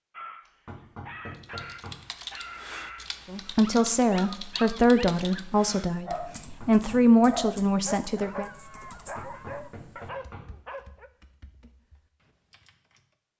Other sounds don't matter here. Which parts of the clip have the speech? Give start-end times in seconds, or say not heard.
3.3-8.5.